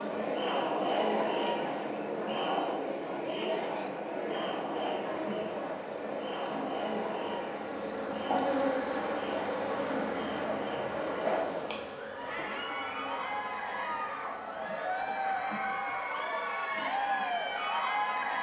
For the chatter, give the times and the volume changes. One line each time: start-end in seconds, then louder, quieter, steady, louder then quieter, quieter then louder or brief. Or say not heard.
0.0-18.3 quieter then louder.